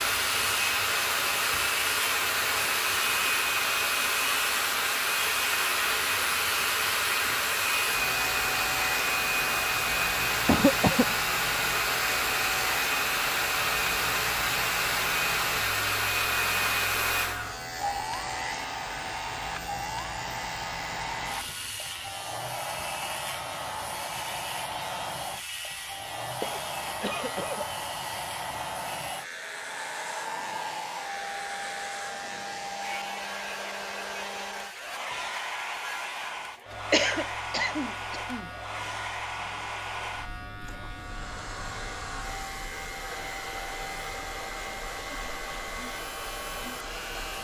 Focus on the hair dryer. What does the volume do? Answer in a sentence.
The volume of the hair dryer goes down.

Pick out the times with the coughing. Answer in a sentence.
You can hear the coughing from 10.4 to 11.2 s, from 26.4 to 27.9 s and from 36.9 to 38.5 s.